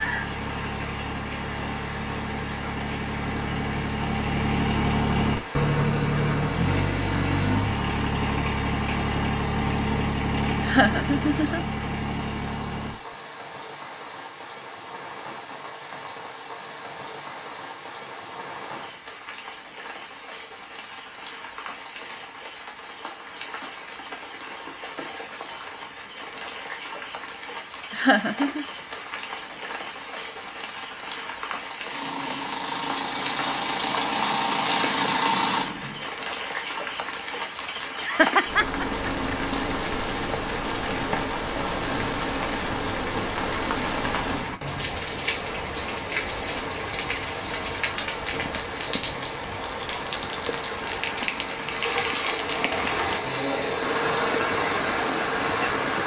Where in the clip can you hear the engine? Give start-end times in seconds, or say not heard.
0.0-13.2, 31.8-36.1, 51.6-56.0.